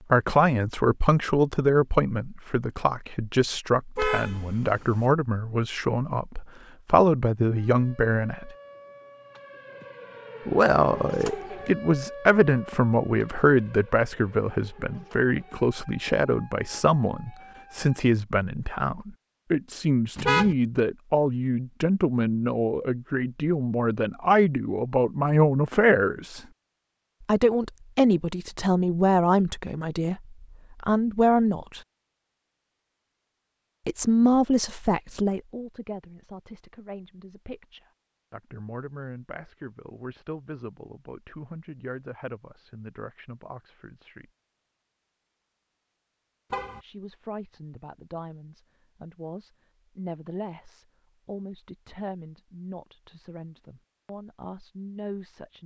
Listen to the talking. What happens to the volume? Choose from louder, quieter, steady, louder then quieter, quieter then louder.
quieter.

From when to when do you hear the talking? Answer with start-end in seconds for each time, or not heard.
0.1-8.5, 10.4-26.4, 27.2-31.8, 33.9-44.3, 46.8-55.6.